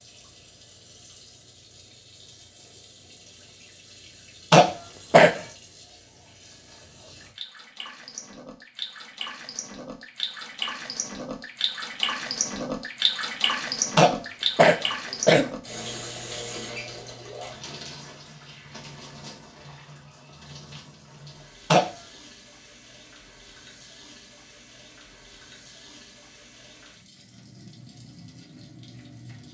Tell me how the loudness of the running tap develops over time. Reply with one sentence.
The loudness of the running tap goes up, then down.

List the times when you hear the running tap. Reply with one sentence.
The running tap can be heard from 0.0 to 29.5 s.